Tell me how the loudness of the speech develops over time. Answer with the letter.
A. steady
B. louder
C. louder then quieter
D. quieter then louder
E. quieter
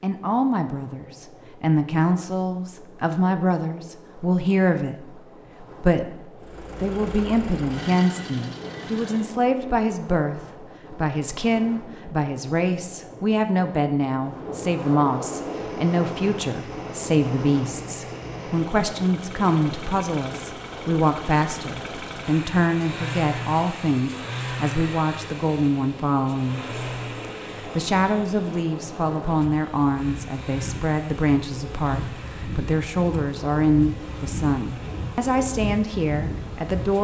A.